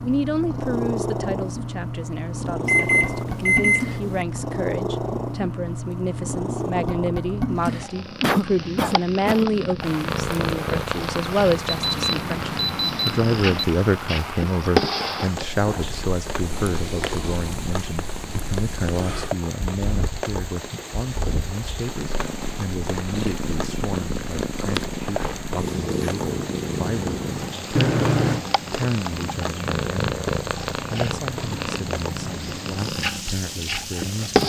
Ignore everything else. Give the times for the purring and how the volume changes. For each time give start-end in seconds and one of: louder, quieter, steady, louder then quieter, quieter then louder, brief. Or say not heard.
0.0-34.4 steady.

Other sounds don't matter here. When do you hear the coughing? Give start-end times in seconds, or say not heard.
8.2-9.5.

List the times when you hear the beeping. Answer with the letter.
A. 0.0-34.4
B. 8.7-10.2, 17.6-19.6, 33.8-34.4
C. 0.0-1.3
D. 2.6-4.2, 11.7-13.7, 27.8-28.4
D.